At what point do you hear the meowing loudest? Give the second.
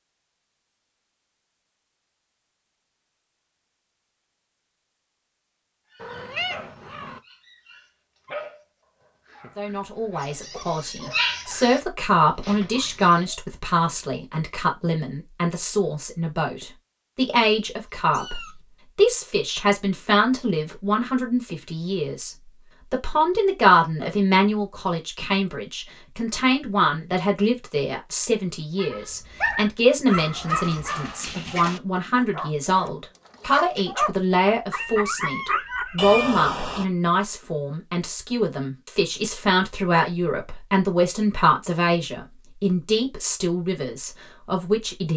36 s.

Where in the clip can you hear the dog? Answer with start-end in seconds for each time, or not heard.
5.9-13.4, 28.8-36.1.